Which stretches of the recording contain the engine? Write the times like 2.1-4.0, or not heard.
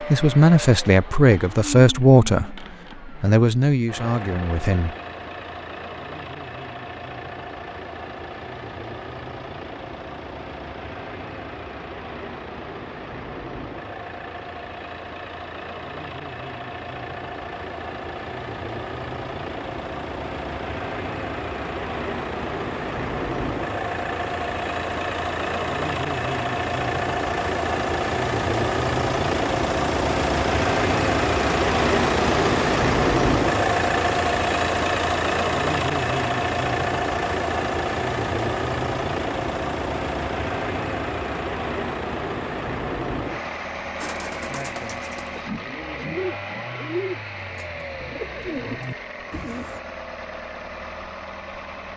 0.0-51.9.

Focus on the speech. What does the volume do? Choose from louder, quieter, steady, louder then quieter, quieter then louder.
quieter.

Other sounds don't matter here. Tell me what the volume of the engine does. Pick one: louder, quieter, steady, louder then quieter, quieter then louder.
louder then quieter.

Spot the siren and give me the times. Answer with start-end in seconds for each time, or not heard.
not heard.